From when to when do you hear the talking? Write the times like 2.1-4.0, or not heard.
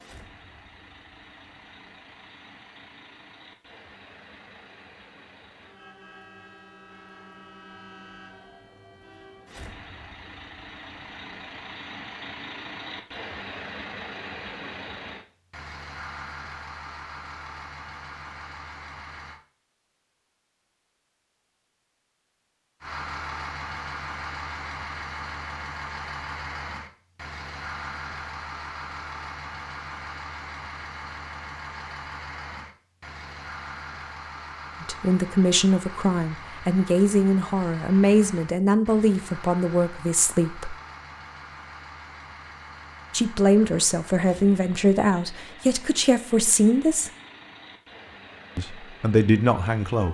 34.8-40.8, 43.1-47.1, 48.5-50.0.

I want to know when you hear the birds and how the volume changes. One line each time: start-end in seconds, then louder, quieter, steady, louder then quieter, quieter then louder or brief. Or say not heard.
not heard.